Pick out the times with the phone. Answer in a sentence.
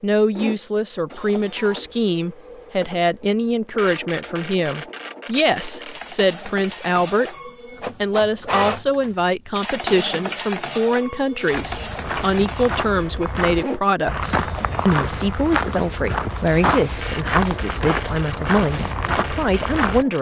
You can't hear the phone here.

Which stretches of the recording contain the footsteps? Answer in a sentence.
The footsteps can be heard from 11.5 to 20.1 s.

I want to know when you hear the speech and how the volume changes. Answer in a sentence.
You can hear the speech from 0.0 to 7.3 s, at a steady volume; and from 8.0 to 20.1 s, at a steady volume.